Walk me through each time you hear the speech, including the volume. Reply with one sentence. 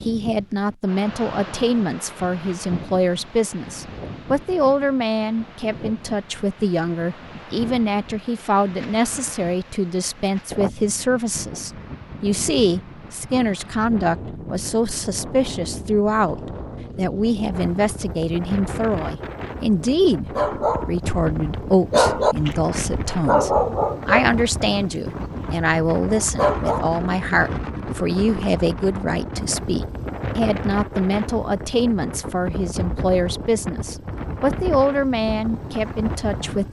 You can hear the speech from 0.0 to 36.6 s, at a steady volume.